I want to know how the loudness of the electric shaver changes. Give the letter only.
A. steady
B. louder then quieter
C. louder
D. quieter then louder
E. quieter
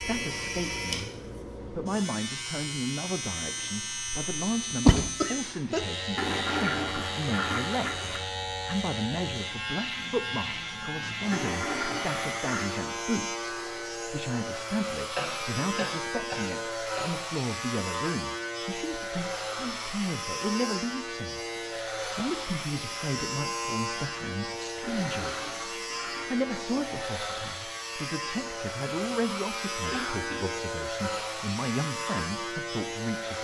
A.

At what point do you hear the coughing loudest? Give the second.
5 s.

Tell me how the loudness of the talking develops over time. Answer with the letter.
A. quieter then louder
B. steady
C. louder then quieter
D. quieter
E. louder
B.